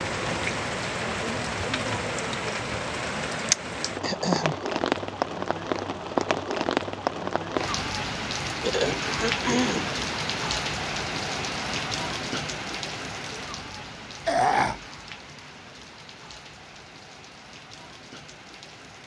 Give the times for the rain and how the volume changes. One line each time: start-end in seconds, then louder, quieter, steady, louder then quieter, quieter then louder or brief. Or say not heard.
0.0-19.0 quieter.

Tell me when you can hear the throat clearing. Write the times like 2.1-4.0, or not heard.
4.0-4.6, 8.6-9.9, 14.2-14.8.